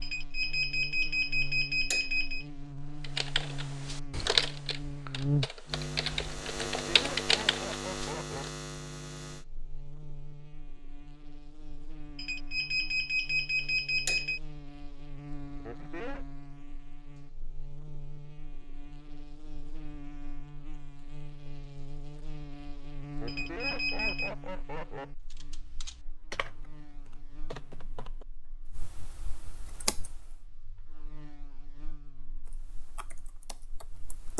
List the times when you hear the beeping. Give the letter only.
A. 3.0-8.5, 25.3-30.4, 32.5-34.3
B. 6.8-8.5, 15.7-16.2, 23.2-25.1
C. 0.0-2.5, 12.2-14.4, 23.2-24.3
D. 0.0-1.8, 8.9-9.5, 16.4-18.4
C.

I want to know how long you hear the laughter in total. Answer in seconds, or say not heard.
4 s.